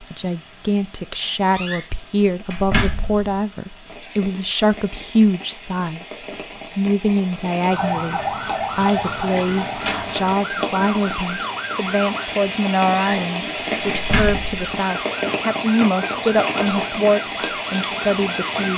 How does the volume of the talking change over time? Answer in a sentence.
The loudness of the talking stays about the same.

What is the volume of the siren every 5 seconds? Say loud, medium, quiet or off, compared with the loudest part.
off, loud, loud, medium.